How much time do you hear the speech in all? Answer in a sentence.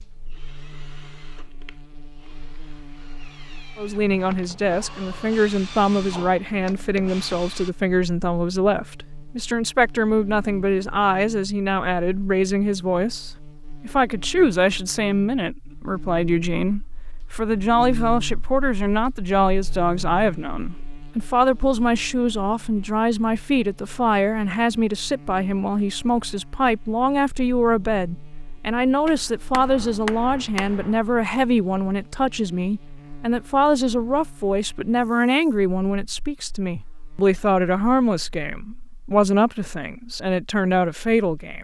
The speech can be heard for 38 seconds in total.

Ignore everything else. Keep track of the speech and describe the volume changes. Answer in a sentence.
The loudness of the speech stays about the same.